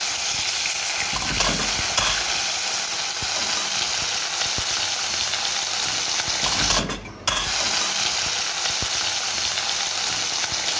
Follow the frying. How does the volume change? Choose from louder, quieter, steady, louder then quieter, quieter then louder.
steady.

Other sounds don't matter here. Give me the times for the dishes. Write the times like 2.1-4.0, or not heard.
1.1-2.4, 6.4-7.7.